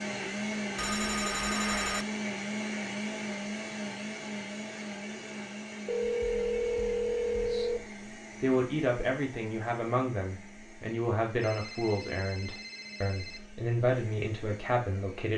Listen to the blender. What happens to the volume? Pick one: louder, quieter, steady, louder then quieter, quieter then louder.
quieter.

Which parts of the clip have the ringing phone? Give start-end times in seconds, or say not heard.
0.8-2.0, 5.8-7.8, 11.4-13.4.